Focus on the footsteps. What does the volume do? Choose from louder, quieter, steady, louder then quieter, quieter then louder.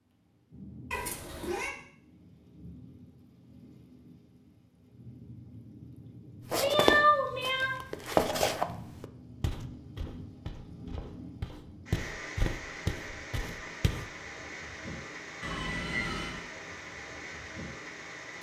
quieter then louder.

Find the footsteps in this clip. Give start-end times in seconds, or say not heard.
6.5-14.1.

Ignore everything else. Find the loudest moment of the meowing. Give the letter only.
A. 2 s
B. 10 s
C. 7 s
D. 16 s
C.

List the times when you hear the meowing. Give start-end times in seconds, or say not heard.
0.9-1.7, 6.6-7.8, 15.4-16.4.